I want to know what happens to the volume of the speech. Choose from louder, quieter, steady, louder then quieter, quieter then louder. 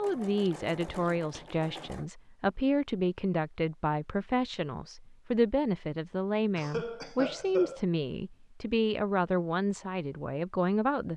steady.